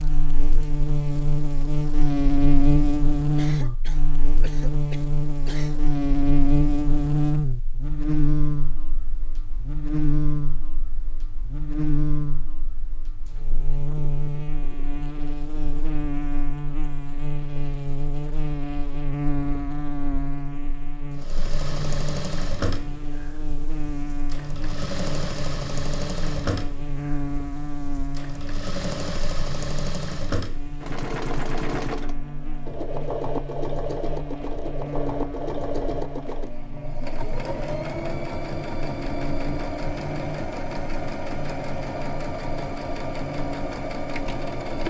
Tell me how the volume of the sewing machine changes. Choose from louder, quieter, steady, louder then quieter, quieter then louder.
steady.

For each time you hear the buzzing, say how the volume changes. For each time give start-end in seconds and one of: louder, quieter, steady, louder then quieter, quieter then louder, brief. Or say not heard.
0.0-44.6 quieter.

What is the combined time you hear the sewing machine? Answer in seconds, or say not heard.
24 s.